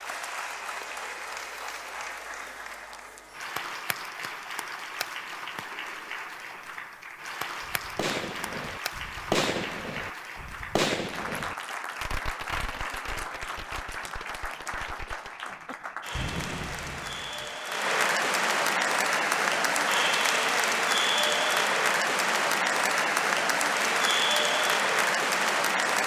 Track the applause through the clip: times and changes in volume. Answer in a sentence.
The applause can be heard from 0.0 to 26.0 s, getting louder.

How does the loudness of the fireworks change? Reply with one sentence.
The volume of the fireworks goes down, then up.